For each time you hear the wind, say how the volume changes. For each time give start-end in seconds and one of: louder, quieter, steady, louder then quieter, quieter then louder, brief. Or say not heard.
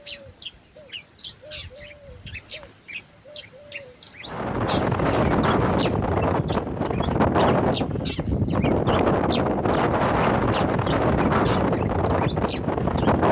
4.2-13.2 steady.